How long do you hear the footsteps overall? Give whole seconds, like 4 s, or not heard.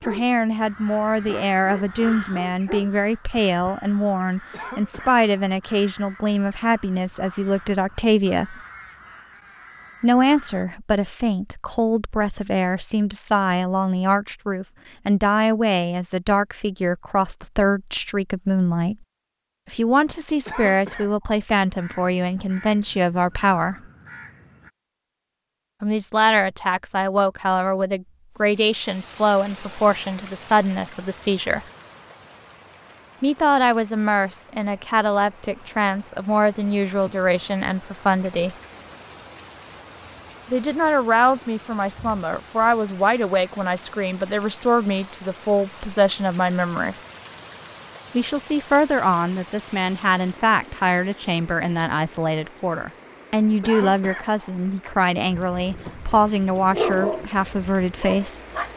not heard.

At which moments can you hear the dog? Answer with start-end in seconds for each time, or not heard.
0.0-2.9, 55.4-58.7.